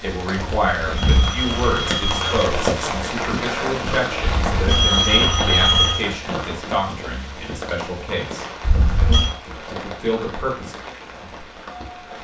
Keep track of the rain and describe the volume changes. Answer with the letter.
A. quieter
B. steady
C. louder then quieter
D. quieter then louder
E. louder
A.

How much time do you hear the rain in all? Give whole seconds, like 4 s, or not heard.
12 s.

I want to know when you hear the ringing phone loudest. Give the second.
6 s.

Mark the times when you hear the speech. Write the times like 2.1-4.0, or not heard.
0.0-8.4, 9.7-10.8.